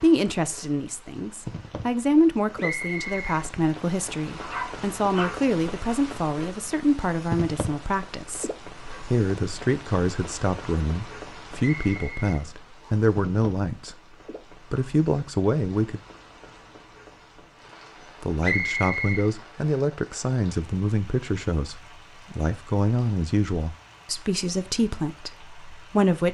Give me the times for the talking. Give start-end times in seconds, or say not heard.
0.0-14.0, 14.7-16.0, 18.2-26.2.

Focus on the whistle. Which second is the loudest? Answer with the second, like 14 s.
19 s.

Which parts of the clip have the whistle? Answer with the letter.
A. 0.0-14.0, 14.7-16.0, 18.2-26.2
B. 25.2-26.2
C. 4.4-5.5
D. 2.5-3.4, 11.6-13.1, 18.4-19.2
D.